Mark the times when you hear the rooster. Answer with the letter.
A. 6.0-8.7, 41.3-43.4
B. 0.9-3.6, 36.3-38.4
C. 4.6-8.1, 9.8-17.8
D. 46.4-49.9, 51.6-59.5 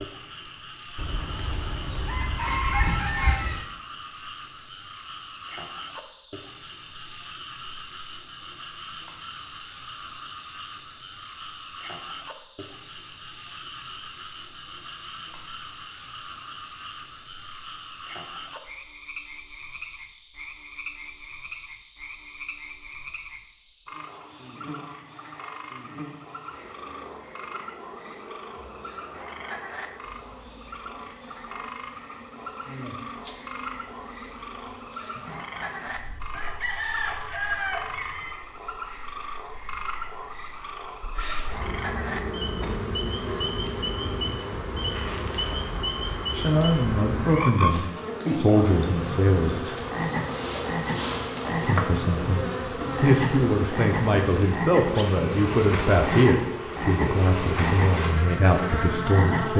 B.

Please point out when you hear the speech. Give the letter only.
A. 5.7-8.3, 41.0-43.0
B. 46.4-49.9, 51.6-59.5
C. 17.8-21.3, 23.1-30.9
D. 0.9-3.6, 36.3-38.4
B.